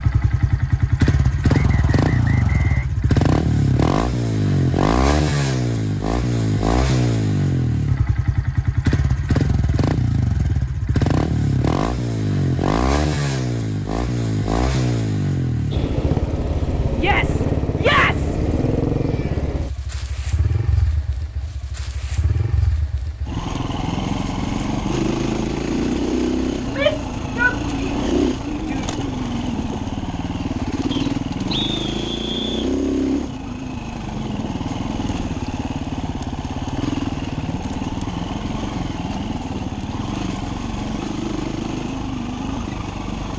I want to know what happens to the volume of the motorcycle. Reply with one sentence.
The loudness of the motorcycle goes down.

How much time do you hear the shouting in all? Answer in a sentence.
You can hear the shouting for 4 seconds altogether.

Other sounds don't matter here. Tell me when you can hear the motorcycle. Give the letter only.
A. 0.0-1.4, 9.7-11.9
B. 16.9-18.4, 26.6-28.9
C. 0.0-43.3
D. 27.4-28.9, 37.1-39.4
C.